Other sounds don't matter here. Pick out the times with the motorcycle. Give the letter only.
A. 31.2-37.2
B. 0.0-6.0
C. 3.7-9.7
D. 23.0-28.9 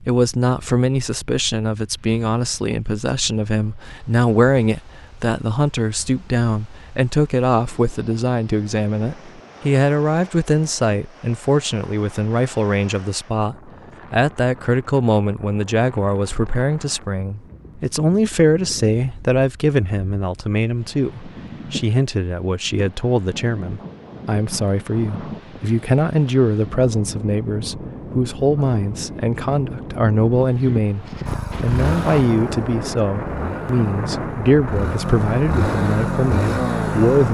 A.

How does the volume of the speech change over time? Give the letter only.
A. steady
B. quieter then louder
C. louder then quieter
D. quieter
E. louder
A.